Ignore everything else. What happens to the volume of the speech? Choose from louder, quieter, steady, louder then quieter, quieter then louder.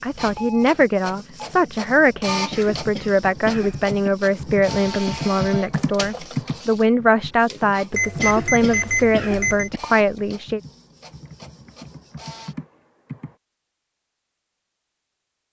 steady.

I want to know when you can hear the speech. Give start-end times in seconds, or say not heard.
0.0-10.6.